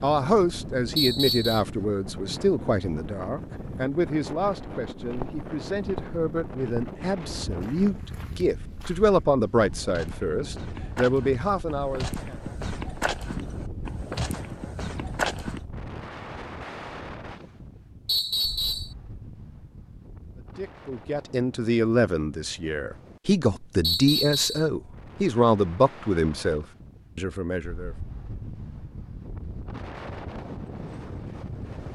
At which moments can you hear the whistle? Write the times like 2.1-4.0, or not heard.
0.9-1.6, 18.1-18.9, 23.8-24.6.